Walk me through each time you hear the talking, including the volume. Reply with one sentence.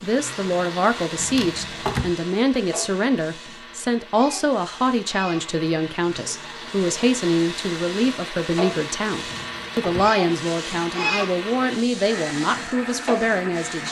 The talking can be heard from 0.0 to 13.8 s, at a steady volume.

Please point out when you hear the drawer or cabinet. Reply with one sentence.
You can hear the drawer or cabinet from 1.1 to 2.1 s and from 9.2 to 10.1 s.